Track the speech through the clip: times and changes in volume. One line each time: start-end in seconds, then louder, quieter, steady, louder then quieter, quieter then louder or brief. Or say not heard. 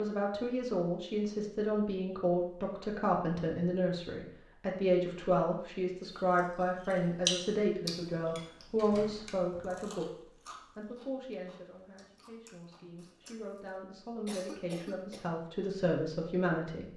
0.0-16.9 quieter then louder.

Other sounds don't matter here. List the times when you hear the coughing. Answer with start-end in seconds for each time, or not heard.
14.2-15.2.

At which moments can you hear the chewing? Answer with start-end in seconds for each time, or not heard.
6.3-13.8.